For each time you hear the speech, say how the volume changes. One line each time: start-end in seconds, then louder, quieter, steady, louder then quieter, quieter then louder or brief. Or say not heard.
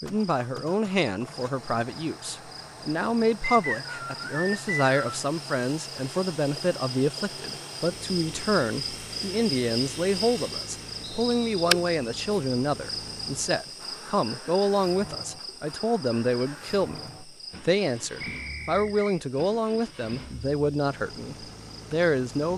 0.0-22.5 steady.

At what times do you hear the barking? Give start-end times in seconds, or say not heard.
not heard.